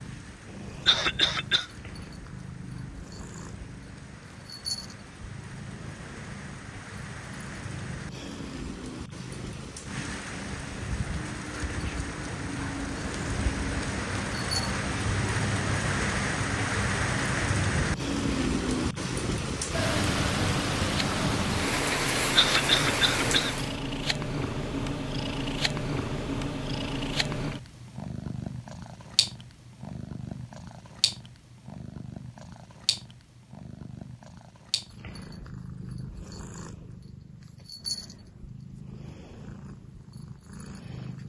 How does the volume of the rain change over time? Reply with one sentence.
The volume of the rain goes up.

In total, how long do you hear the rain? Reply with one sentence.
The rain can be heard for 24 seconds in total.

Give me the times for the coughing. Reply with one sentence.
You can hear the coughing from 0.8 to 1.6 s and from 22.4 to 23.6 s.